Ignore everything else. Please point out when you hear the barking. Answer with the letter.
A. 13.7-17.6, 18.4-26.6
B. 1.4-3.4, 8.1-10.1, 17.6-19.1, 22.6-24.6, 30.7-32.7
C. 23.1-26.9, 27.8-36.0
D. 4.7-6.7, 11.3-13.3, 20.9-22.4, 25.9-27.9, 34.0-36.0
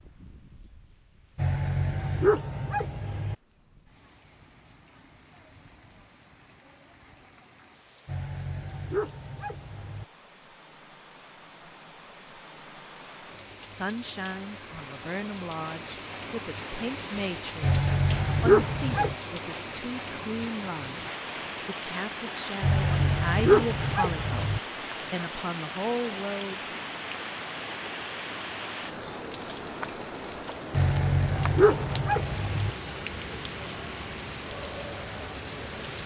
B.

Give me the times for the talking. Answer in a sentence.
The talking can be heard from 13.7 to 17.6 s and from 18.4 to 26.6 s.